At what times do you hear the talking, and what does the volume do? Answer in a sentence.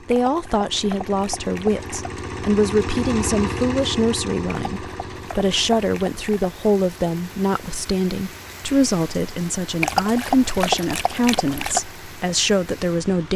The talking can be heard from 0.1 to 13.3 s, at a steady volume.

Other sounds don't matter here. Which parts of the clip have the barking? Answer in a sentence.
You can hear the barking from 0.1 to 1.9 s, from 4.7 to 6.5 s and from 9.8 to 11.8 s.